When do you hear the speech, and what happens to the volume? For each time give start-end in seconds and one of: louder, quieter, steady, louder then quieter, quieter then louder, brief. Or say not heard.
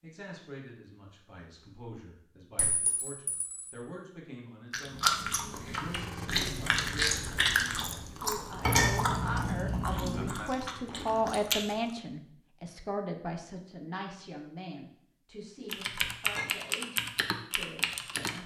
0.0-18.4 louder then quieter.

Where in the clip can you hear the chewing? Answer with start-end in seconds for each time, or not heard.
4.7-11.9.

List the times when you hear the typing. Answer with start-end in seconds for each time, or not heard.
15.7-18.4.